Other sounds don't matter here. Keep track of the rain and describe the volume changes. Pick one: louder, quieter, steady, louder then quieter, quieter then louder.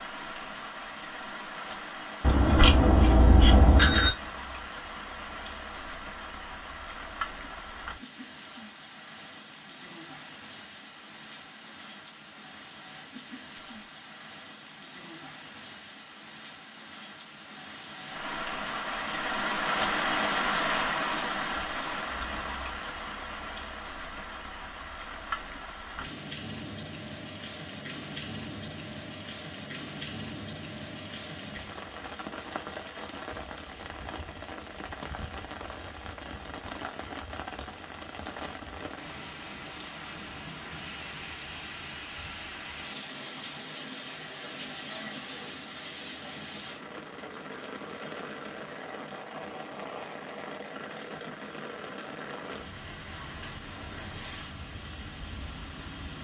louder then quieter.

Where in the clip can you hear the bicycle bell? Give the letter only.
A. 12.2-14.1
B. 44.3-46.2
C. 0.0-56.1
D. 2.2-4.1
D.